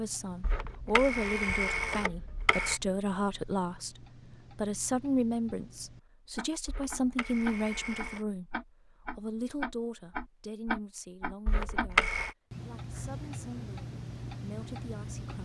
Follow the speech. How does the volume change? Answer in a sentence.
The loudness of the speech goes down.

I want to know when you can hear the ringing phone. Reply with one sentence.
You can hear the ringing phone from 0.4 to 2.8 s, from 6.7 to 8.2 s and from 11.4 to 12.3 s.